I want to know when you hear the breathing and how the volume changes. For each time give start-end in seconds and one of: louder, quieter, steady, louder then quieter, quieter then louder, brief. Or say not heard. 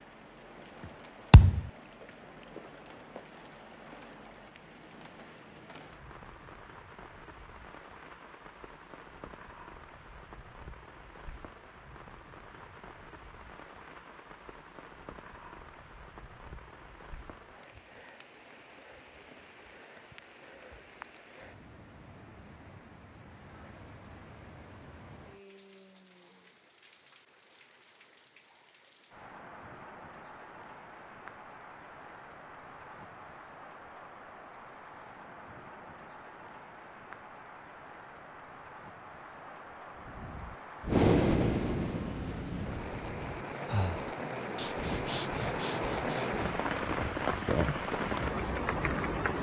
40.0-46.6 quieter.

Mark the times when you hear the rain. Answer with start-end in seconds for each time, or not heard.
0.0-49.3.